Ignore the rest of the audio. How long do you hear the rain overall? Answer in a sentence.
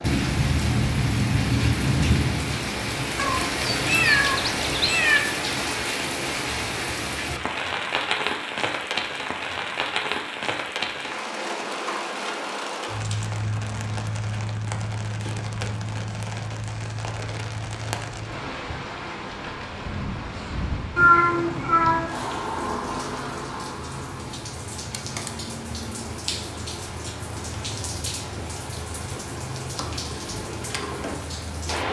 You can hear the rain for 32 seconds altogether.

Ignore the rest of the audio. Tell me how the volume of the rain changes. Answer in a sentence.
The volume of the rain goes down.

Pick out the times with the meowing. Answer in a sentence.
You can hear the meowing from 3.1 to 5.2 s and from 20.9 to 22.1 s.